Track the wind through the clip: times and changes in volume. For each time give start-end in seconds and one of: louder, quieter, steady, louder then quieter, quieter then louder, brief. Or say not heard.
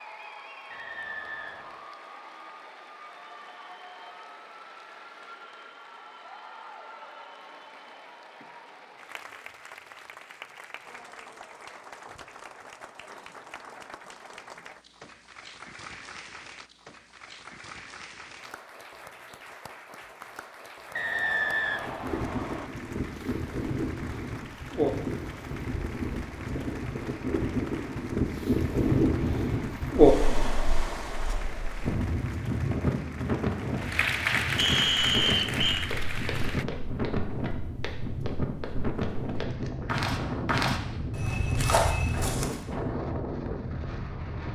21.6-44.4 louder then quieter.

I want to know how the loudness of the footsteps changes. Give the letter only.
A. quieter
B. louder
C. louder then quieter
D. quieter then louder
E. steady
B.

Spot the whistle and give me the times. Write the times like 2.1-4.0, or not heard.
0.7-1.9, 20.9-22.7, 34.5-35.9.